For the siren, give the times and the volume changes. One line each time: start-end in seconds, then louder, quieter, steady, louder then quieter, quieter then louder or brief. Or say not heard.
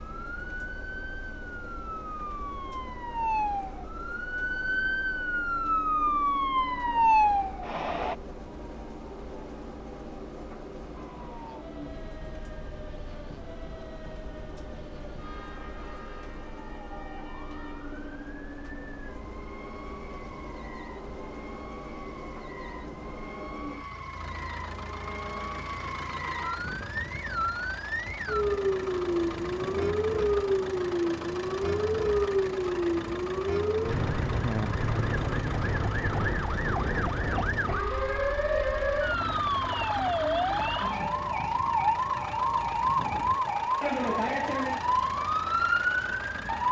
0.0-8.2 louder
10.9-46.6 louder.